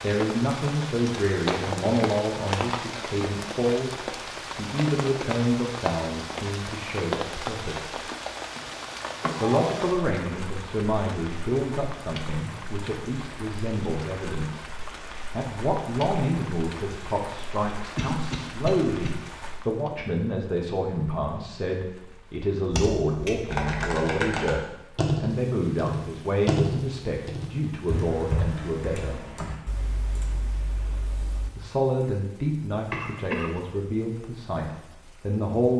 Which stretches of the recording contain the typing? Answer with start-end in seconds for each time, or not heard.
22.7-31.5.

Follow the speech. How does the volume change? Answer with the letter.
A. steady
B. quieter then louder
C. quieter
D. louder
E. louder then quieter
A.